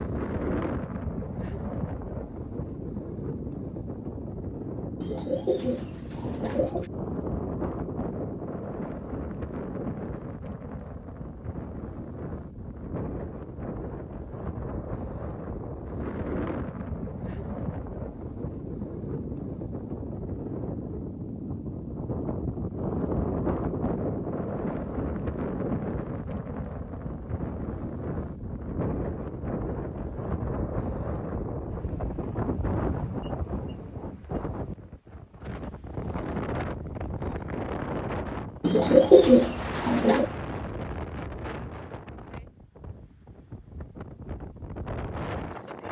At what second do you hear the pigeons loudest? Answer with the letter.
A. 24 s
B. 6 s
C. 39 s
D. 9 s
C.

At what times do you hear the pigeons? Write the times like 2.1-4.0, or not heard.
5.0-6.9, 38.6-40.2.